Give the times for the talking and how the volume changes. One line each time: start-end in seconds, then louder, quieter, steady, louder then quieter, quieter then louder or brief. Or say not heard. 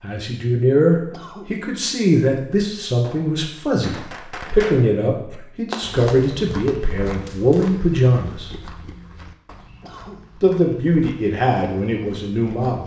0.0-8.5 steady
10.4-12.8 brief.